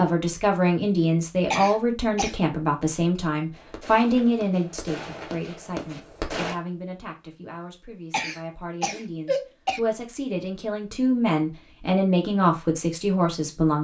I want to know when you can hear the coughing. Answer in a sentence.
The coughing can be heard from 1.5 to 2.4 s and from 8.1 to 9.8 s.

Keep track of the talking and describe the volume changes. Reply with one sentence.
The loudness of the talking goes down, then up.